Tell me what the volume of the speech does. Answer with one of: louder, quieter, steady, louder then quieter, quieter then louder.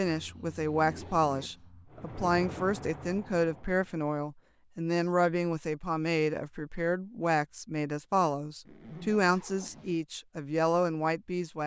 steady.